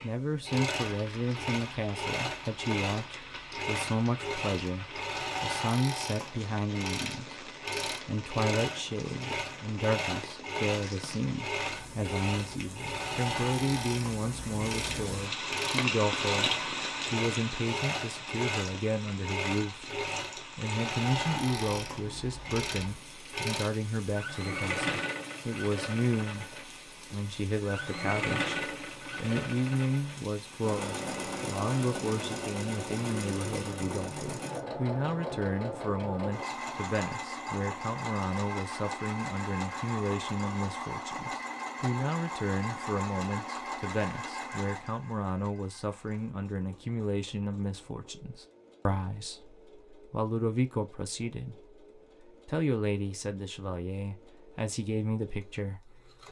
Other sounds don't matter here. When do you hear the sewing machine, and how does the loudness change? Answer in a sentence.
You can hear the sewing machine from 0.0 to 56.2 s, getting quieter.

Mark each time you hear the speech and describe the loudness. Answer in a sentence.
The speech can be heard from 0.0 to 56.1 s, at a steady volume.